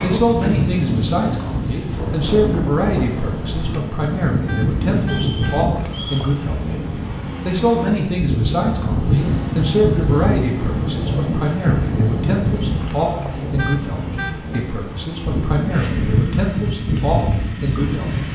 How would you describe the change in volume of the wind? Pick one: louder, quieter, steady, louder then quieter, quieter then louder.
steady.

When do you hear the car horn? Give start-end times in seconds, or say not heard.
4.5-5.7, 13.6-14.7.